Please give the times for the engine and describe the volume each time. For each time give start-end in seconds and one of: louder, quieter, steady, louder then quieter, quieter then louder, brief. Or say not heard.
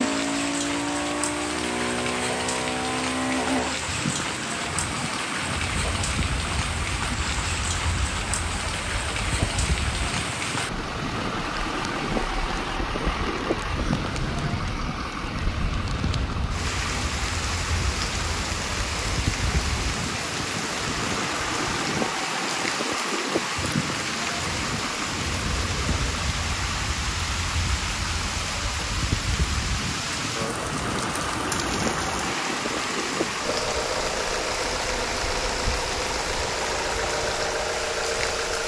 0.0-38.6 steady.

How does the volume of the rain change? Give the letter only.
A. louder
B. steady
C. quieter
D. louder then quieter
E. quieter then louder
B.